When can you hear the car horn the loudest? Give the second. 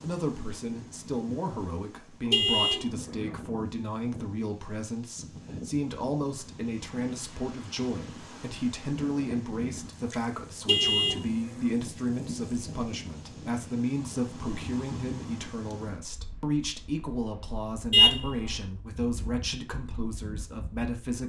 18 s.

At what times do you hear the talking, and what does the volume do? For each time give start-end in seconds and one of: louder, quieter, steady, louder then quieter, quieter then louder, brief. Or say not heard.
0.0-21.2 steady.